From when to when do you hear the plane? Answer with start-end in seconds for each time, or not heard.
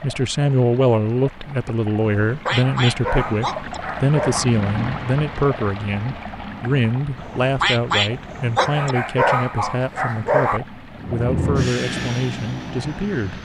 10.9-13.4.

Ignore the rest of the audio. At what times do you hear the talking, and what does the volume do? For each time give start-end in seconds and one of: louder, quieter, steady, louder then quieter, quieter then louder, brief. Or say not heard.
0.0-13.4 quieter.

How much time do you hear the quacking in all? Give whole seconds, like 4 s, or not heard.
3 s.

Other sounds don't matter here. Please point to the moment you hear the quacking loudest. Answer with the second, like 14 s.
8 s.